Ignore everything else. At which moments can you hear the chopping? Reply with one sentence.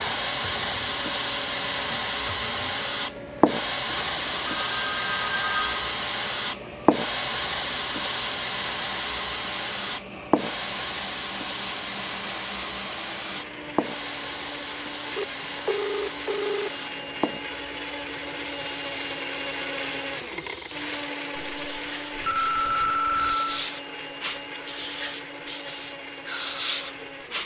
You can't hear the chopping here.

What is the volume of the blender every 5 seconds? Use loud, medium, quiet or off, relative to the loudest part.
medium, medium, medium, loud, loud, medium.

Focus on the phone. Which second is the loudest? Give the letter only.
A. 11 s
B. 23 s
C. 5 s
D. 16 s
B.